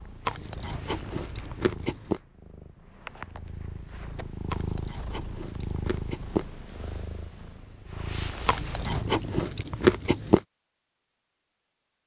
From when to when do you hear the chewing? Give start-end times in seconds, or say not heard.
0.2-2.2, 4.5-6.5, 8.4-10.4.